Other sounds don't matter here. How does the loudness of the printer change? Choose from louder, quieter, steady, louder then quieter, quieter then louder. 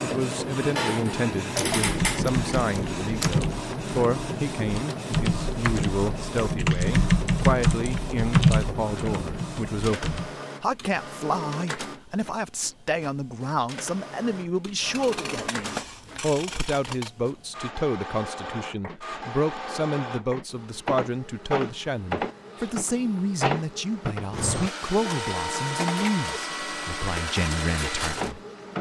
quieter then louder.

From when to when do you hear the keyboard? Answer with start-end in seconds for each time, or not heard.
1.8-10.3.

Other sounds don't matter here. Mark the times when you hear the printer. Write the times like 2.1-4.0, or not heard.
0.0-28.7.